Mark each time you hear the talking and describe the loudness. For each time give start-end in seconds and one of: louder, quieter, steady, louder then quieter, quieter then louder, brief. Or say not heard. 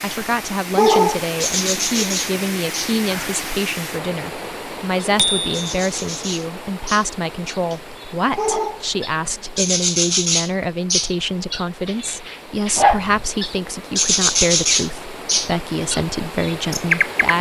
0.0-17.3 steady.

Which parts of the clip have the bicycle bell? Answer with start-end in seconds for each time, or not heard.
5.2-5.8.